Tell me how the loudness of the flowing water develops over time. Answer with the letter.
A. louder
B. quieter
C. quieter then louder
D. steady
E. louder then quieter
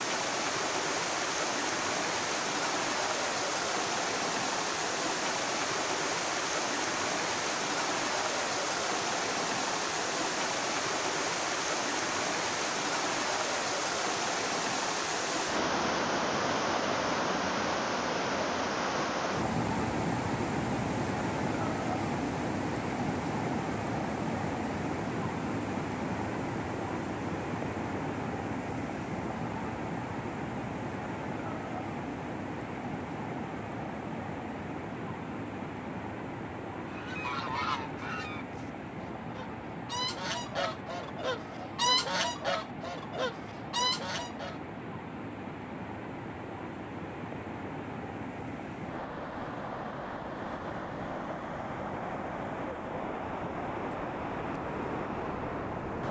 B.